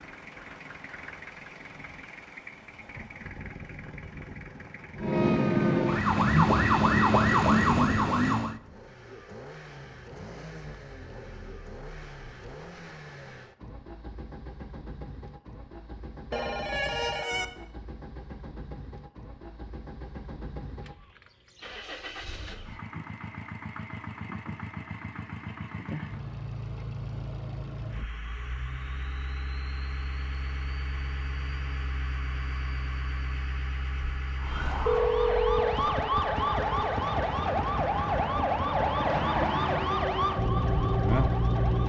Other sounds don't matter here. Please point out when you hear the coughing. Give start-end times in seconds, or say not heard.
not heard.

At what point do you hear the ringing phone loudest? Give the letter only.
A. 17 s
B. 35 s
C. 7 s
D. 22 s
B.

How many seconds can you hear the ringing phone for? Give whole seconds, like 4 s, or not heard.
2 s.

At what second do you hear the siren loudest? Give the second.
7 s.